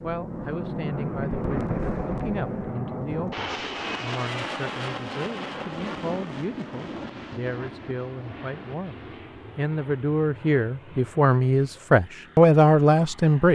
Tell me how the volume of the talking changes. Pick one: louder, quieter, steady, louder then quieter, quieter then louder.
louder.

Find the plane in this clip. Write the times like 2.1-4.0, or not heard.
0.0-13.5.